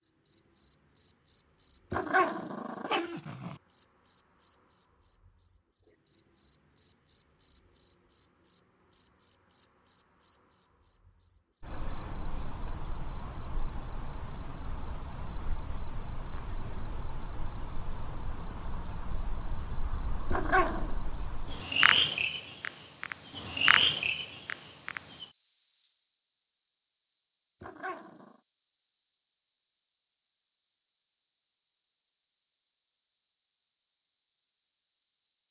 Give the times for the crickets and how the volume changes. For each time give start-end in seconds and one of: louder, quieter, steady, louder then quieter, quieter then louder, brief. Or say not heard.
0.0-35.4 quieter.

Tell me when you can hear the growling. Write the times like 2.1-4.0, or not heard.
1.9-3.5, 20.3-20.9, 27.6-28.4.